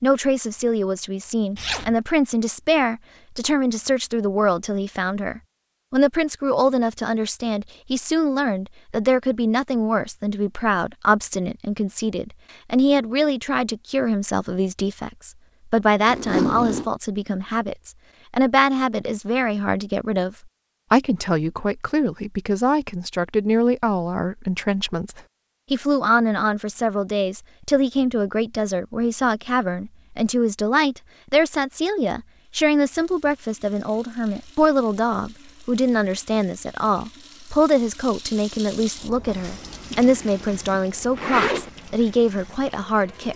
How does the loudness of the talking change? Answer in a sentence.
The loudness of the talking stays about the same.